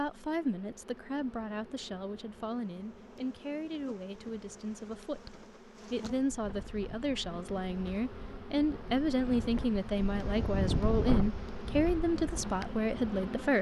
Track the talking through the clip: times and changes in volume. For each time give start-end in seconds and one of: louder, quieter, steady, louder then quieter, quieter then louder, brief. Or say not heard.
0.0-13.5 louder.